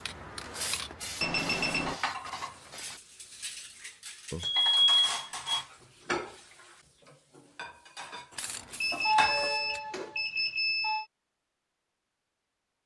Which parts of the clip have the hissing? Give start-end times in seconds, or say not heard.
0.0-3.0, 8.3-9.8.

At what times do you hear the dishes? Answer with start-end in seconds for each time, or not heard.
1.6-10.2.